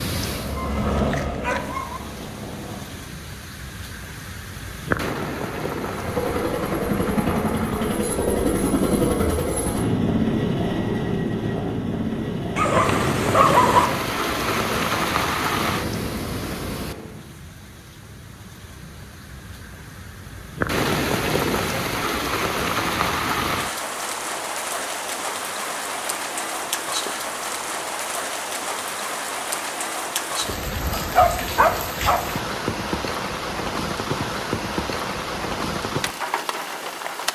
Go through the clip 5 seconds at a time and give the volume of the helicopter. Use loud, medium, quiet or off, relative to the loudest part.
medium, loud, loud, medium, off, off, off, off.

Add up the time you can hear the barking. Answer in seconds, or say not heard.
4 s.